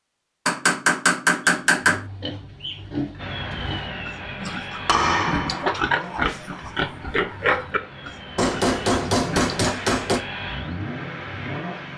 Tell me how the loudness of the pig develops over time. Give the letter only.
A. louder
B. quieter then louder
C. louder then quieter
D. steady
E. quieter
C.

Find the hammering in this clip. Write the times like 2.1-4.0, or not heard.
0.5-2.0, 4.7-6.5, 8.3-10.2.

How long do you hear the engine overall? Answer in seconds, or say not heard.
9 s.